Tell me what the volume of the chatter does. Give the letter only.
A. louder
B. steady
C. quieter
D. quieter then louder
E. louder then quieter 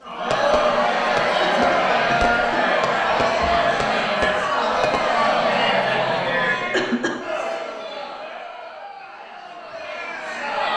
C.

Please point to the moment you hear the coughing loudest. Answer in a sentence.
The loudest moment of the coughing is at 7 seconds.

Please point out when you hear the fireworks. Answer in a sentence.
The fireworks can be heard from 0.3 to 5.0 s.